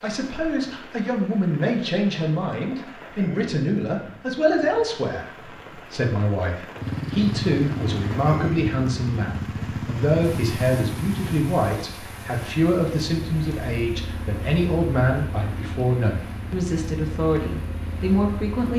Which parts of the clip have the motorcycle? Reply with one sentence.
The motorcycle can be heard from 6.8 to 18.7 s.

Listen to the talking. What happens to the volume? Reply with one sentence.
The loudness of the talking stays about the same.